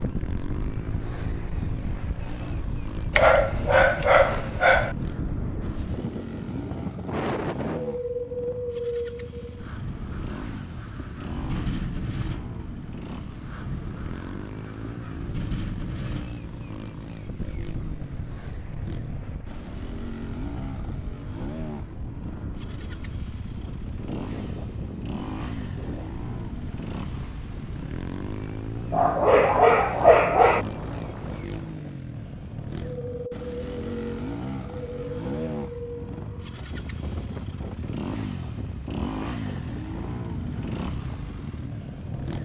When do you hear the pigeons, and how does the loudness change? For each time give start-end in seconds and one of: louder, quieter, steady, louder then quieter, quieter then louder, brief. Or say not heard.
not heard.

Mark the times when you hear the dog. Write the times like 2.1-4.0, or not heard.
3.1-5.0, 28.9-30.6.